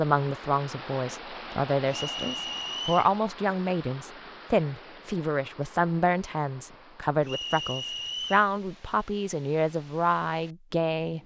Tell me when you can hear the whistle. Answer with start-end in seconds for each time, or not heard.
1.9-3.1, 7.2-8.5.